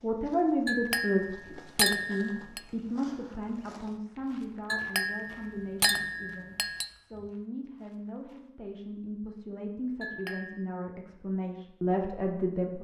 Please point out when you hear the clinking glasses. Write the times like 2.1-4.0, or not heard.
0.7-2.6, 4.7-6.9, 10.0-10.7.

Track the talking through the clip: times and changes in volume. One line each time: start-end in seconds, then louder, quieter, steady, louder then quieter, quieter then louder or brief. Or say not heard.
0.0-12.8 quieter then louder.